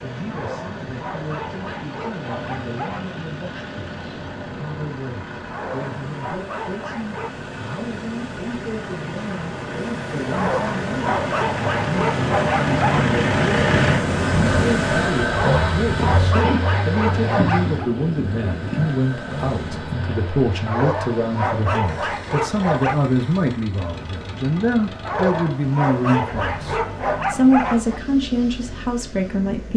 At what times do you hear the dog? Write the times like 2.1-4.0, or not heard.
0.3-3.1, 5.5-7.5, 10.3-13.2, 15.3-17.9, 20.6-23.1, 25.1-28.0.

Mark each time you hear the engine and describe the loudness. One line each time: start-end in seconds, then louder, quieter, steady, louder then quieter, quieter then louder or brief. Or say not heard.
0.0-29.5 louder then quieter.